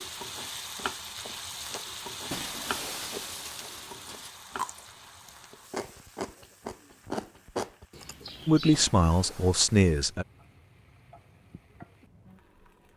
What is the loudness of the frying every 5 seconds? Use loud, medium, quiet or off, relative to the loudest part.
loud, quiet, quiet.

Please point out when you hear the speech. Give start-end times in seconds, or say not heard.
8.4-10.2.